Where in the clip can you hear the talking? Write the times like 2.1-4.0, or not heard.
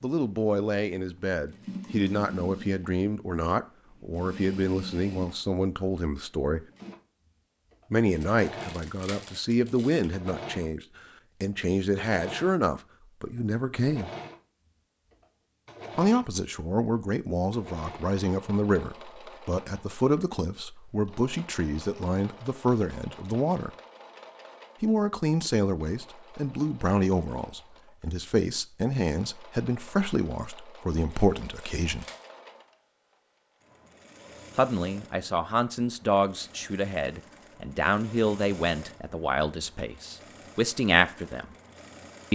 0.0-6.6, 7.9-10.8, 11.4-14.1, 15.9-23.7, 24.8-32.0, 34.5-41.5.